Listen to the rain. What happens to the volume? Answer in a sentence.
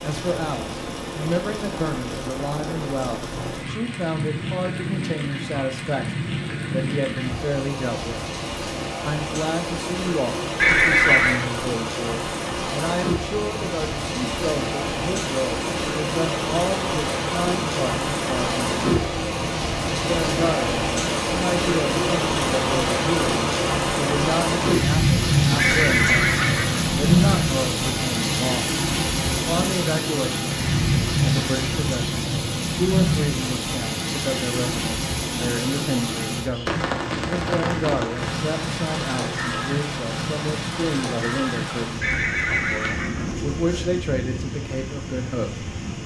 The loudness of the rain goes up, then down.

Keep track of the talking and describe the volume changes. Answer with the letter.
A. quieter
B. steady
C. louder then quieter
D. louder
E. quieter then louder
B.